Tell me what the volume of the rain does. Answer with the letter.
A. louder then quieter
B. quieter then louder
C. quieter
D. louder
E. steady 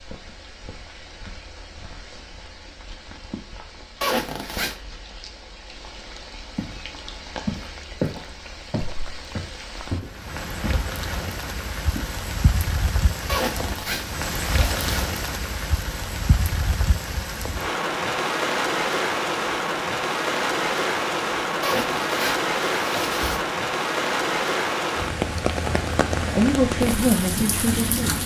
D.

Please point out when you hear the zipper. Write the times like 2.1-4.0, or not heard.
4.0-4.8, 13.2-15.1, 21.6-23.4.